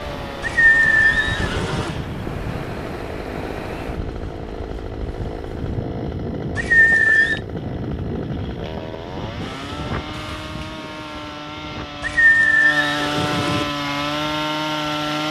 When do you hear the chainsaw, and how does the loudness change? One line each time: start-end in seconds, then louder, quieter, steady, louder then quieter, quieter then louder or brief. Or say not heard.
0.0-15.2 louder.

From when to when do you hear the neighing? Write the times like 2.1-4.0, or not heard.
0.4-2.0, 6.5-7.4, 12.0-13.7.